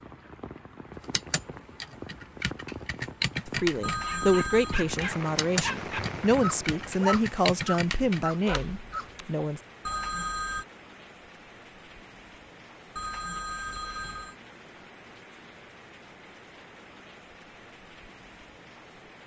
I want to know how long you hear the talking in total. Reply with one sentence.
You can hear the talking for 6 seconds altogether.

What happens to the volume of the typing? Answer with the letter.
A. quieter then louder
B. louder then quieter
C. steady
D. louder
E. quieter
B.